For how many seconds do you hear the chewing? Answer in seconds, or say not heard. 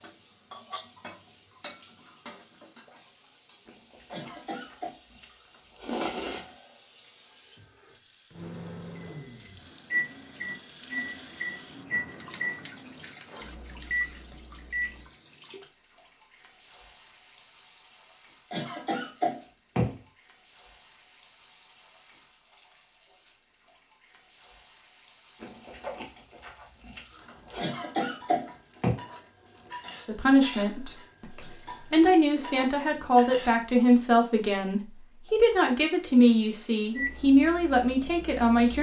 5 s.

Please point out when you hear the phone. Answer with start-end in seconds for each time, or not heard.
not heard.